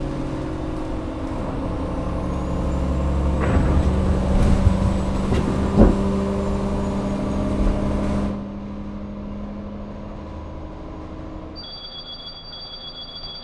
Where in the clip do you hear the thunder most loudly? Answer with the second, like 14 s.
6 s.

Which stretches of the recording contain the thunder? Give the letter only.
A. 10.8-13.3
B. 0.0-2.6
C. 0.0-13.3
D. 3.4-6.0
D.